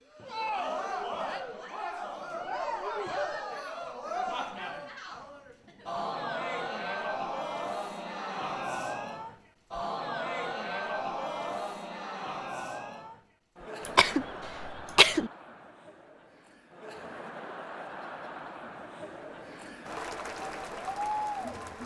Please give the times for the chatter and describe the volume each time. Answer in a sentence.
The chatter can be heard from 0.1 to 21.8 s, getting quieter then louder.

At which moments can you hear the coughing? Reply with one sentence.
The coughing can be heard from 13.8 to 15.3 s.